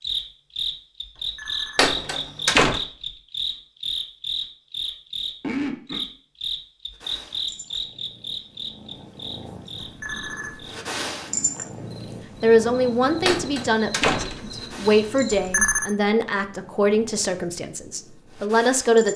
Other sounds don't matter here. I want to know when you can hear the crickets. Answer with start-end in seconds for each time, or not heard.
0.0-15.7.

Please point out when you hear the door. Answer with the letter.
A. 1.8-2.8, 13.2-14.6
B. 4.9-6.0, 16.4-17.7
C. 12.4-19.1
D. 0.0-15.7
A.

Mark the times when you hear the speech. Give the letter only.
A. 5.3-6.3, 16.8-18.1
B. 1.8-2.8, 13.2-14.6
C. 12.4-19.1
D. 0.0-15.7
C.